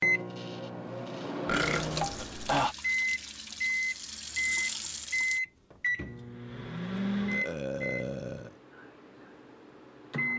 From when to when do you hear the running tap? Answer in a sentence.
The running tap can be heard from 1.5 to 5.4 s.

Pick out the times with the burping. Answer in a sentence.
You can hear the burping from 1.4 to 2.8 s and from 7.3 to 8.5 s.